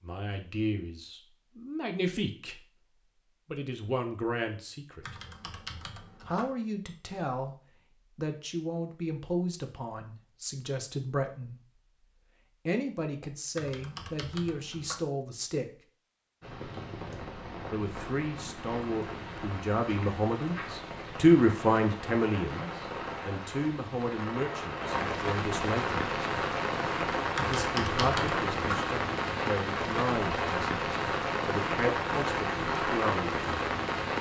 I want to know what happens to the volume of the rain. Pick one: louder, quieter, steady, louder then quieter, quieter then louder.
louder.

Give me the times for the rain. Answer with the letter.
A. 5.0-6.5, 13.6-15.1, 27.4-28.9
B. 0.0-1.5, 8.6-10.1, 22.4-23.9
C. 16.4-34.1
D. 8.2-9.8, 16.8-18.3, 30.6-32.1
C.